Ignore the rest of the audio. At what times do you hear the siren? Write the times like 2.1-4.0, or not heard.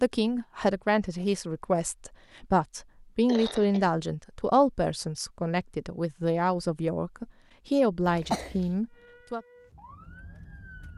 8.9-10.9.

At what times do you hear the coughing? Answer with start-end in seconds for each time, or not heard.
3.2-3.9, 8.1-8.8.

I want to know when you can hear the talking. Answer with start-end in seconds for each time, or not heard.
0.0-9.4.